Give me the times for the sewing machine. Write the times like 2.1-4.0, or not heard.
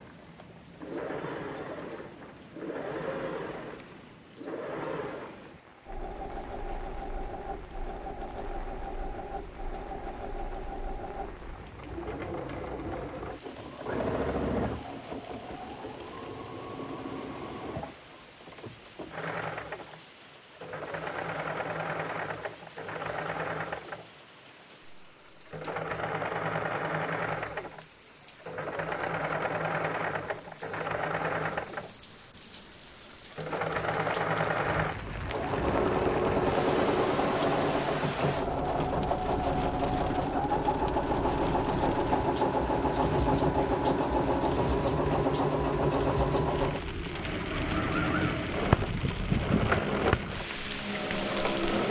0.0-24.1, 25.2-31.9, 33.0-51.8.